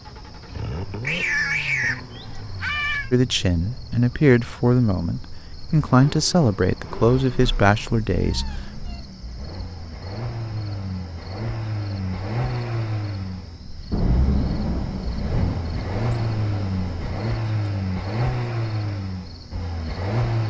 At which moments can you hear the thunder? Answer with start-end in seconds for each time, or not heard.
13.9-17.2.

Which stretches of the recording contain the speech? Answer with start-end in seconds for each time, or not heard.
3.1-8.8.